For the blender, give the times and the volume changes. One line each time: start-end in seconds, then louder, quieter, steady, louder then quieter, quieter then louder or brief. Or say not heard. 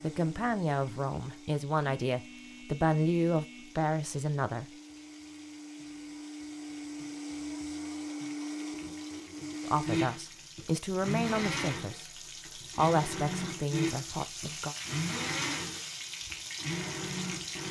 0.0-17.6 louder.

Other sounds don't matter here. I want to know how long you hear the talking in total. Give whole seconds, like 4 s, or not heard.
9 s.